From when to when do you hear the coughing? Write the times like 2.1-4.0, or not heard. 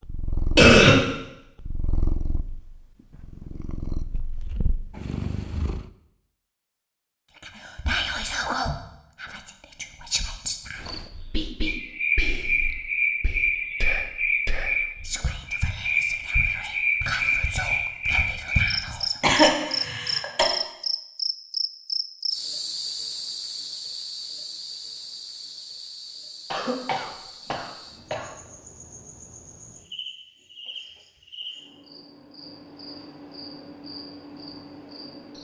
0.6-1.0, 19.2-20.4, 26.5-28.3.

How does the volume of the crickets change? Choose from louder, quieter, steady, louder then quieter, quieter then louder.
quieter.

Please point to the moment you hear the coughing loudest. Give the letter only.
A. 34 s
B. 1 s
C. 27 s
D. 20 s
B.